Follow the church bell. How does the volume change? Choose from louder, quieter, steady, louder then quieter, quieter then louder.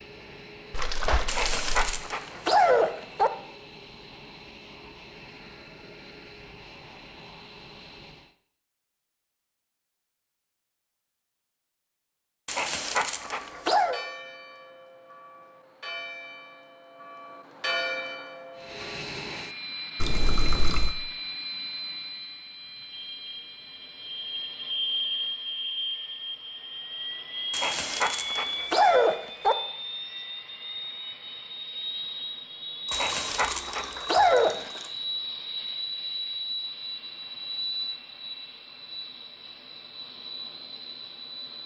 quieter then louder.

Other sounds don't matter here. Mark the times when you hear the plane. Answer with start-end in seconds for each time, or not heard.
0.0-8.3, 18.6-41.6.